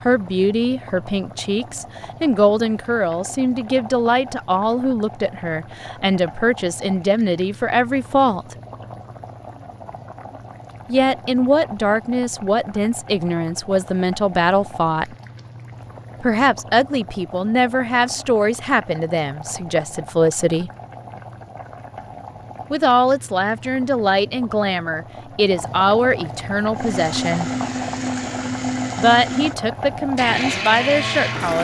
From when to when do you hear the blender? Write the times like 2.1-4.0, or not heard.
26.8-31.6.